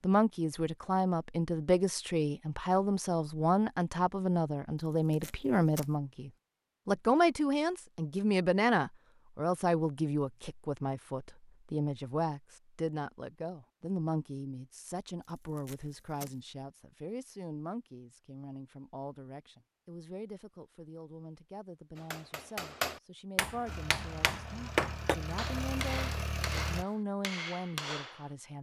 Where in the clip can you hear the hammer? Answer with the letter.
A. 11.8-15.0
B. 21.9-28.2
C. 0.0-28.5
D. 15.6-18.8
B.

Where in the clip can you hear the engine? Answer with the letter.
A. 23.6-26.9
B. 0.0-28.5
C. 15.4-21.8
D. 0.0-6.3
A.